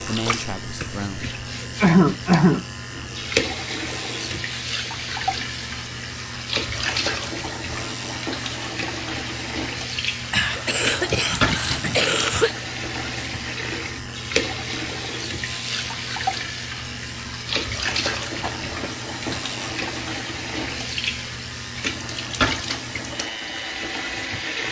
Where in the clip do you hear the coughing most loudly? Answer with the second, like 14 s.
2 s.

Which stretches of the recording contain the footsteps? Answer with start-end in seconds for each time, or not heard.
not heard.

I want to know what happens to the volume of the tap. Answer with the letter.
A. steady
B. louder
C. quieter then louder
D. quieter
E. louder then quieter
A.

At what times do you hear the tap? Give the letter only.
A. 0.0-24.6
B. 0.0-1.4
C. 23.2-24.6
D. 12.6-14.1
A.